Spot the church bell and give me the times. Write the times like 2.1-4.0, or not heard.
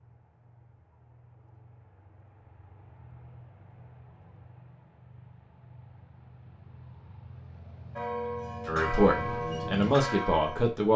8.0-10.9.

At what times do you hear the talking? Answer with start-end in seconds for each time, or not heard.
8.7-10.9.